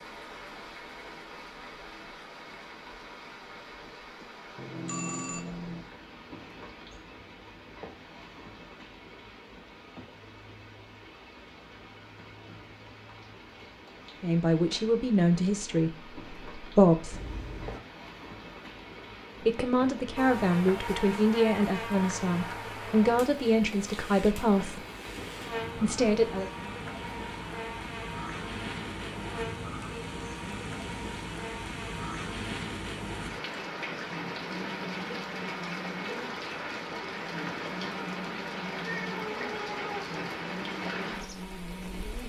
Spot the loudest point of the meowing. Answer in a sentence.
The volume of the meowing peaks at 39 seconds.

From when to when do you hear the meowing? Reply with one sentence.
The meowing can be heard from 17.1 to 17.8 s and from 38.8 to 40.1 s.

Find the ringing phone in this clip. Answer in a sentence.
You can hear the ringing phone from 4.5 to 5.8 s.